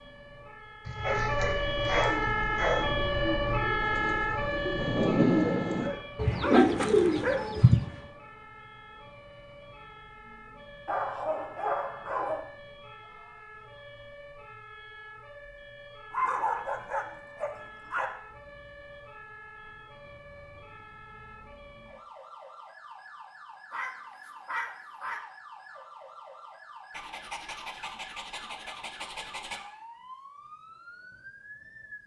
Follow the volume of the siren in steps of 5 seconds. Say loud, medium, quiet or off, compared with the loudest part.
loud, quiet, quiet, quiet, quiet, quiet, quiet.